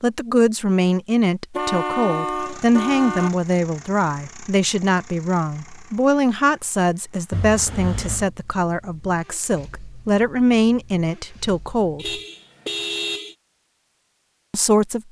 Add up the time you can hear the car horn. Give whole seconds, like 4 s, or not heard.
4 s.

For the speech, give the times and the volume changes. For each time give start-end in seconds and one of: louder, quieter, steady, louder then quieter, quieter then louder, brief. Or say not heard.
0.0-12.2 steady
14.5-15.0 brief.